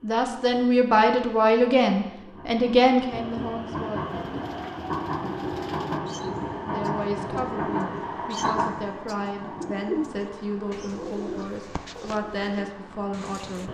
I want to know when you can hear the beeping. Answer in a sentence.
You can't hear the beeping here.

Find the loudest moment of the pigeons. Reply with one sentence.
The loudest moment of the pigeons is at 10 seconds.